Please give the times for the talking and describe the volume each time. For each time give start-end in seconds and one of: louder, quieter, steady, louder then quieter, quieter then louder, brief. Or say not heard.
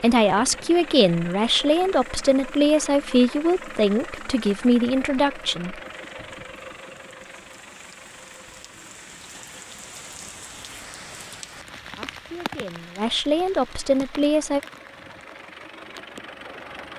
0.0-5.8 steady
11.9-14.6 brief.